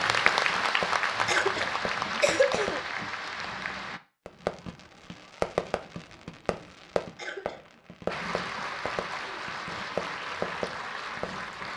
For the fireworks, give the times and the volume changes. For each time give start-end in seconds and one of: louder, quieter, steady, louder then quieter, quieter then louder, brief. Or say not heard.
0.2-2.8 brief
4.2-11.3 quieter then louder.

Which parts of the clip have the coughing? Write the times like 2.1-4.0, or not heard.
1.2-3.1, 7.2-7.8.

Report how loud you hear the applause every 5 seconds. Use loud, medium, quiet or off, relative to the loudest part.
loud, medium, medium.